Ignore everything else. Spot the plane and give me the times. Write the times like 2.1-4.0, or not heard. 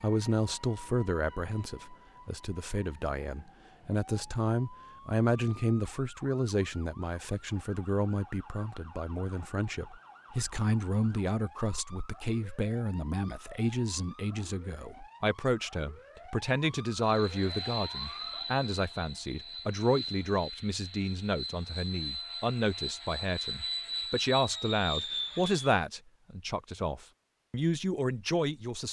17.0-25.8.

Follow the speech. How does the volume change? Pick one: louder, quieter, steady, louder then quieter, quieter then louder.
steady.